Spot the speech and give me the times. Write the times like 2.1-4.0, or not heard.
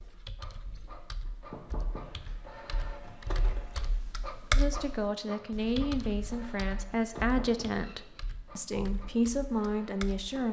4.5-10.4.